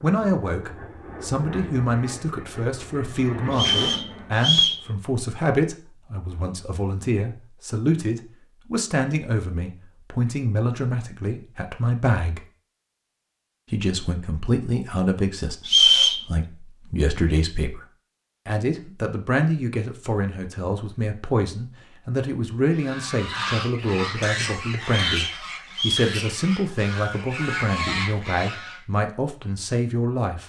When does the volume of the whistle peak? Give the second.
16 s.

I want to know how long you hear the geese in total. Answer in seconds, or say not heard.
6 s.